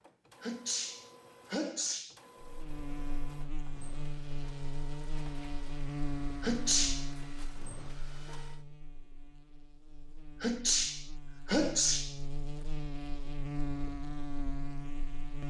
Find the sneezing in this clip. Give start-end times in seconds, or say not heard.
0.4-2.1, 6.4-7.1, 10.4-12.2.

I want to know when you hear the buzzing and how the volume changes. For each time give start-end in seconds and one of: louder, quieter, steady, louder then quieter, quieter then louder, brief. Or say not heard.
2.4-15.4 quieter then louder.